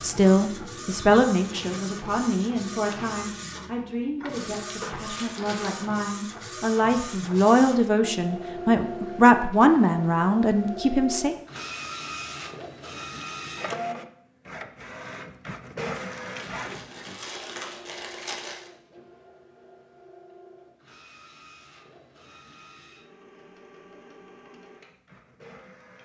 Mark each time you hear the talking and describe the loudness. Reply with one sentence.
The talking can be heard from 0.0 to 11.3 s, getting quieter then louder.